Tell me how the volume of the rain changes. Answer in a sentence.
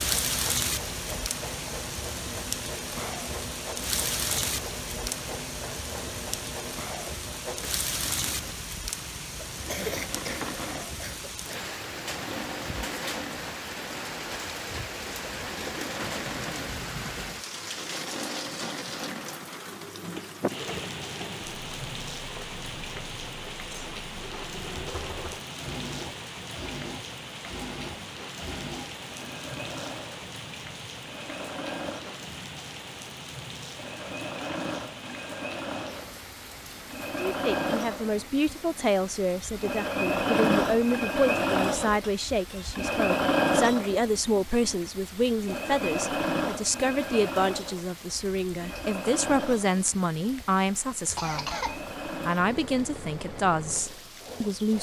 The volume of the rain goes down.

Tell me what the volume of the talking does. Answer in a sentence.
The loudness of the talking stays about the same.